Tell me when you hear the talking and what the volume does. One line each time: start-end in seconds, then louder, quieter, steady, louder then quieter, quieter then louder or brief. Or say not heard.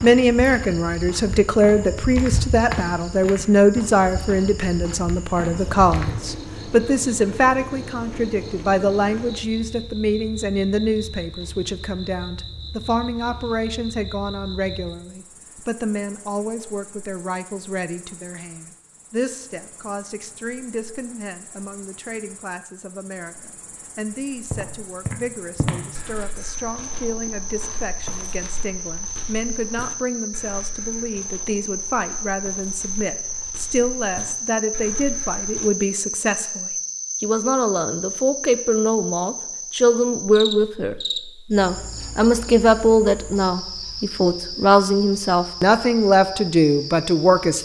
0.0-47.5 quieter then louder.